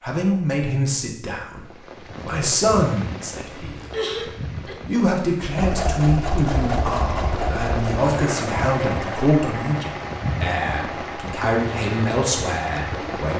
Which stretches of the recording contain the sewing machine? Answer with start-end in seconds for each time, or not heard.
5.5-13.3.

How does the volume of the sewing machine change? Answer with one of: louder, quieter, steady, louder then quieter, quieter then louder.
quieter.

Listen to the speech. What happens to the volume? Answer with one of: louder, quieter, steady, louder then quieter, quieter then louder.
steady.